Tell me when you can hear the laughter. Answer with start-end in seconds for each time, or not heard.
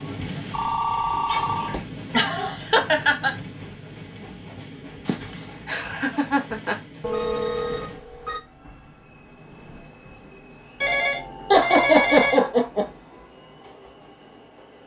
1.6-3.4, 5.0-6.8, 11.5-12.8.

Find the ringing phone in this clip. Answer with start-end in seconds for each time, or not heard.
0.5-1.8, 7.0-8.4, 10.8-12.4.